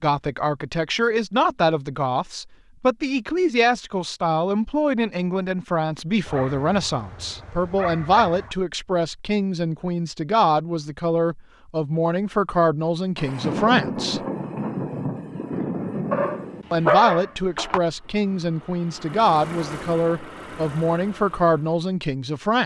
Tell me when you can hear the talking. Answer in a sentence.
You can hear the talking from 0.0 to 14.2 s and from 16.7 to 22.6 s.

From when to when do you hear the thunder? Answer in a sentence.
You can hear the thunder from 13.2 to 16.6 s.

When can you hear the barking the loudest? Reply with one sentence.
The volume of the barking peaks at 17 seconds.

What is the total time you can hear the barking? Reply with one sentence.
The barking can be heard for 4 seconds in total.